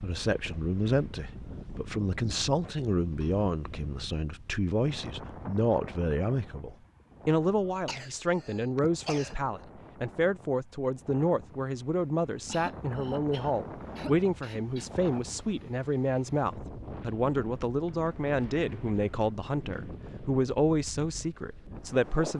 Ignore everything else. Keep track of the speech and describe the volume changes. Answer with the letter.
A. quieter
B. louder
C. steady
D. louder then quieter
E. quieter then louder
C.